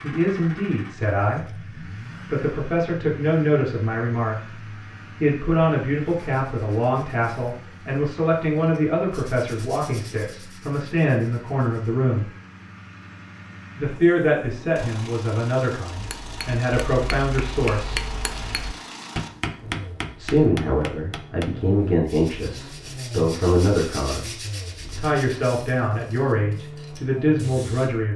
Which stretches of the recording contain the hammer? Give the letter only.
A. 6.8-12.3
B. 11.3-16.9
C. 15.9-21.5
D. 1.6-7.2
C.